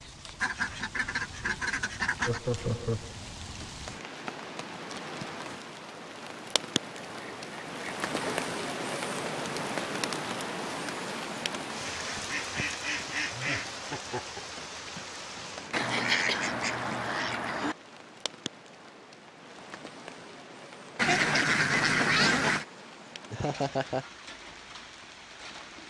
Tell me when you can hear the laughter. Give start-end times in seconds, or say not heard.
2.2-3.1, 13.3-14.6, 23.3-24.1.